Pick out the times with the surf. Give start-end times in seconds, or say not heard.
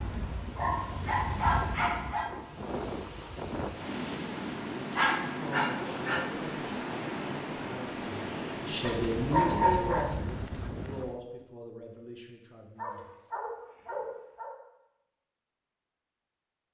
0.0-11.2.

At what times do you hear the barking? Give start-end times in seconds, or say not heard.
0.6-2.3, 5.0-6.7, 8.8-10.3, 12.8-14.6.